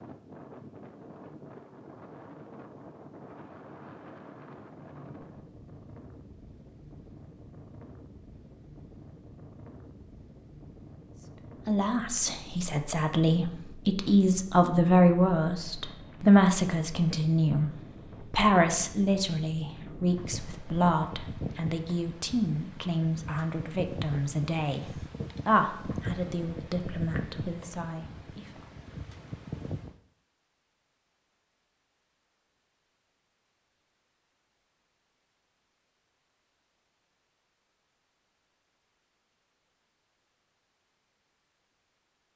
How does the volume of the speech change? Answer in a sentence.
The volume of the speech goes down.